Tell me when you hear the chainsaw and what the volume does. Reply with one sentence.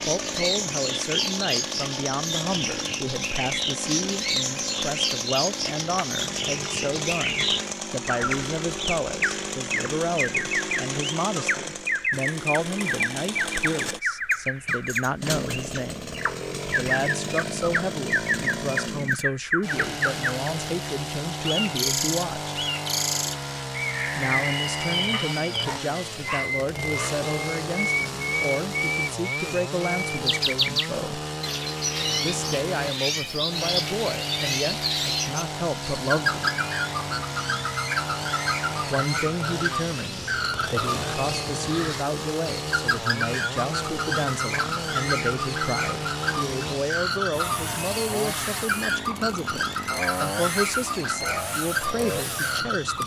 The chainsaw can be heard from 0.0 to 53.0 s, at a steady volume.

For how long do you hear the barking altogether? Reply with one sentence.
You can hear the barking for 2 seconds altogether.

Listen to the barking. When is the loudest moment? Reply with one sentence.
The loudest moment of the barking is at 26 seconds.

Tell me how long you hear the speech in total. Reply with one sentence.
You can hear the speech for 47 seconds altogether.